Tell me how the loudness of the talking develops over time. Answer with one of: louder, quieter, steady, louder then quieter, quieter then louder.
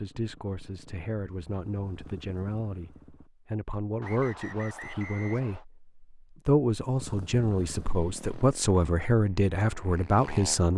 louder.